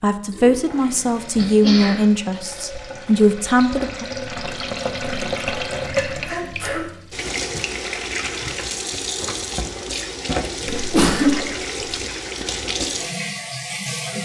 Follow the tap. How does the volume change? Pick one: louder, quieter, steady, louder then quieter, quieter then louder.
louder.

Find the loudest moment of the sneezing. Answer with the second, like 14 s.
11 s.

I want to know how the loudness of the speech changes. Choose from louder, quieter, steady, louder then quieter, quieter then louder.
quieter then louder.